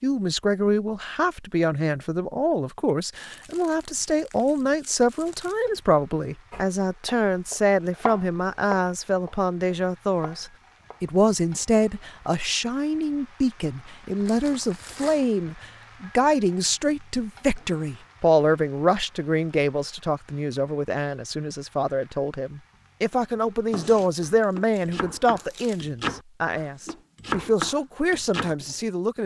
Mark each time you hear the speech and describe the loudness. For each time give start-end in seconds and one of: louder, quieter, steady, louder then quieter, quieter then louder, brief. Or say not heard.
0.0-29.2 steady.